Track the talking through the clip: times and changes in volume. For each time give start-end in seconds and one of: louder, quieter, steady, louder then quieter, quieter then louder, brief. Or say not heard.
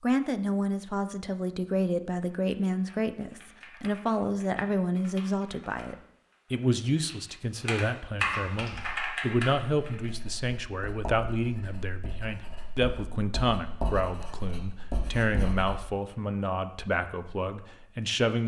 0.0-18.4 steady.